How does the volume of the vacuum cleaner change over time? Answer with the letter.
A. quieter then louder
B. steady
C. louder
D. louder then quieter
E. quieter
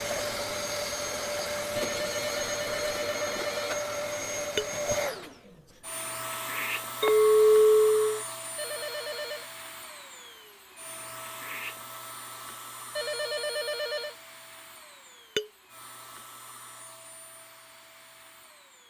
E.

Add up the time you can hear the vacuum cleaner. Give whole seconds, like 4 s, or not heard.
19 s.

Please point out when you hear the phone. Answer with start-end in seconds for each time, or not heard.
1.8-3.8, 8.6-9.4, 12.9-14.2.